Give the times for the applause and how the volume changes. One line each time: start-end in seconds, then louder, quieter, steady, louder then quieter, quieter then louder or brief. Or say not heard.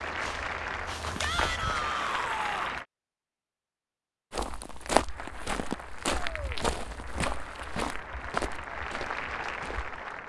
0.0-2.9 brief
5.0-10.2 louder.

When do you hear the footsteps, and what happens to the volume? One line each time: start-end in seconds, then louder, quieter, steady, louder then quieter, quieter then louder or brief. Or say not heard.
0.0-2.0 brief
4.3-9.9 quieter.